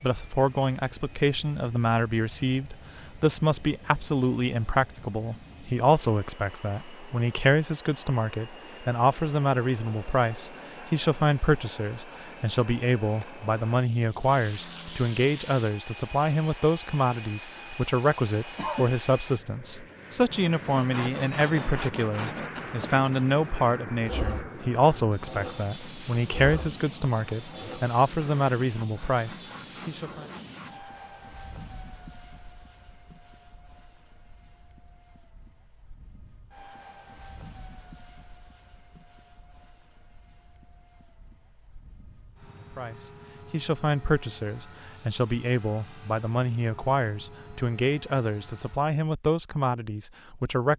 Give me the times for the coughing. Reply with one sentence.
The coughing can be heard from 18.6 to 19.2 s.